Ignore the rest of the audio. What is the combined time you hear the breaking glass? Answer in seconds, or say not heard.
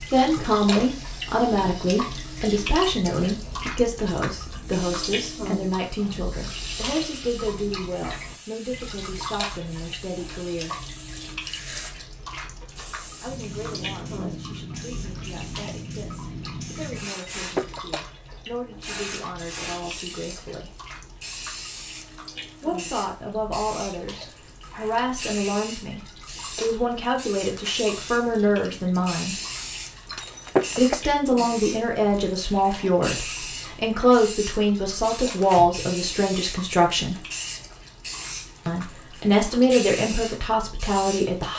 2 s.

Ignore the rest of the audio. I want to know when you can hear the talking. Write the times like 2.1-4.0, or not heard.
0.1-10.8, 13.2-20.8, 22.6-29.4, 30.8-37.2, 38.6-41.5.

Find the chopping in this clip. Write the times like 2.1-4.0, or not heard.
not heard.